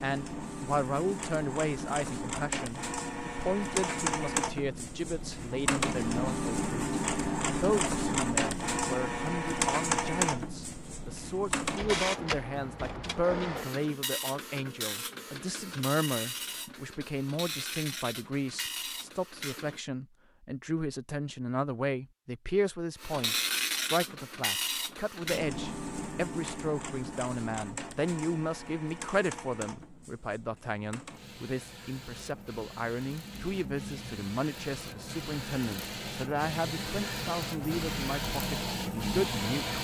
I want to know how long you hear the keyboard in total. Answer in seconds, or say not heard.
not heard.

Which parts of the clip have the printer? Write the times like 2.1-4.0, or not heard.
0.0-19.8, 23.0-39.7.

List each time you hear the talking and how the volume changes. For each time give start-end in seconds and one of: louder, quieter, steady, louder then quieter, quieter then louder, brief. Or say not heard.
0.0-39.7 steady.